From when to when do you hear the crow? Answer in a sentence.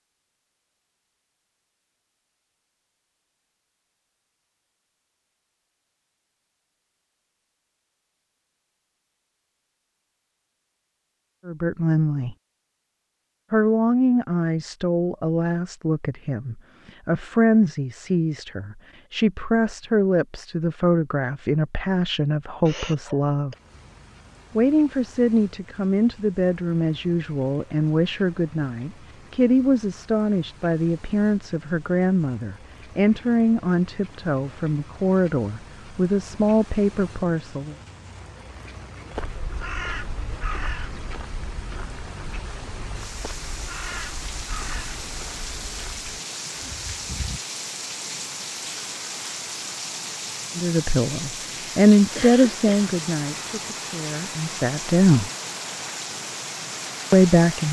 You can hear the crow from 39.1 to 47.4 s.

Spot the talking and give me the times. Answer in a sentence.
You can hear the talking from 11.4 to 12.3 s, from 13.5 to 23.6 s, from 24.6 to 37.8 s, from 50.5 to 55.3 s and from 57.1 to 57.6 s.